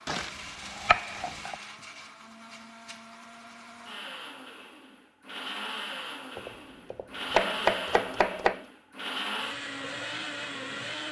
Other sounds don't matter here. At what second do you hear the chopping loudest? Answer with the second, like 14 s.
8 s.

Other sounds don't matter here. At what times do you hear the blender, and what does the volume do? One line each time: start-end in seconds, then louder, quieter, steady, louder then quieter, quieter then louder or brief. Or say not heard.
0.0-11.0 louder.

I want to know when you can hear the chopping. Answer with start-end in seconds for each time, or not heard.
0.1-1.6, 6.3-8.7.